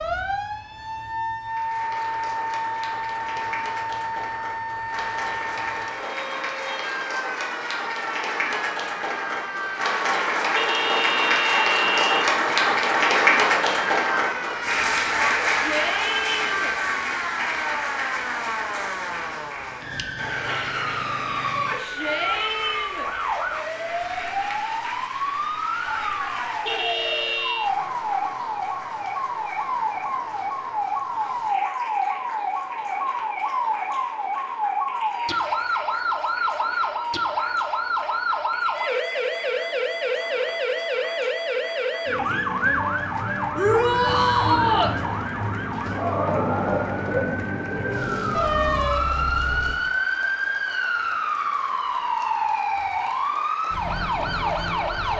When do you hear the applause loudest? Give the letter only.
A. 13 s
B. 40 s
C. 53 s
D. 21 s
A.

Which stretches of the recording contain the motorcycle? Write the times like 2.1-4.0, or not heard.
not heard.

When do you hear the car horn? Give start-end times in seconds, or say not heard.
10.6-12.3, 26.6-27.7, 48.3-49.9.